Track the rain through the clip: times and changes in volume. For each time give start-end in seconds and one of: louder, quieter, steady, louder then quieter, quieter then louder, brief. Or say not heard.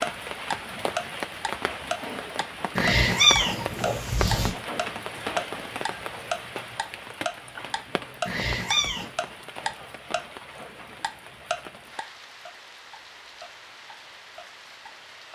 0.0-15.3 quieter.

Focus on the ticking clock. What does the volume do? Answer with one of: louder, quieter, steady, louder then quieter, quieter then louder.
quieter.